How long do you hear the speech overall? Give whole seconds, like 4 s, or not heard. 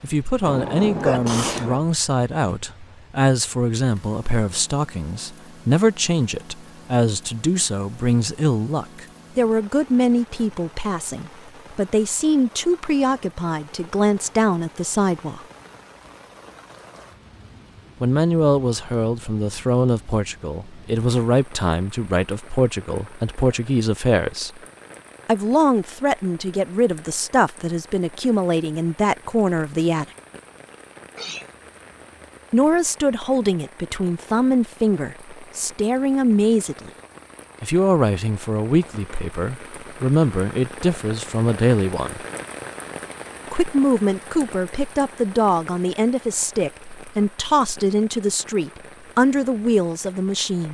43 s.